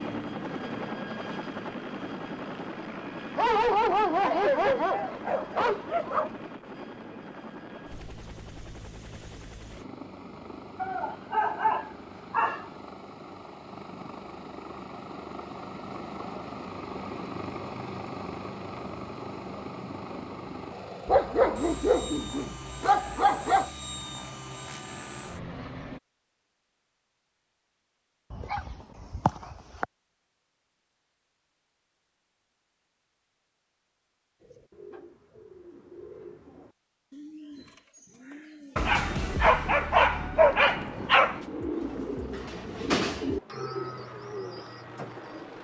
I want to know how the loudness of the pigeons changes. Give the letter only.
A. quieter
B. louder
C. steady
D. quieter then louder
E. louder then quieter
E.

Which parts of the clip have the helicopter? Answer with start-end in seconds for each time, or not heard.
0.0-26.0, 40.6-45.5.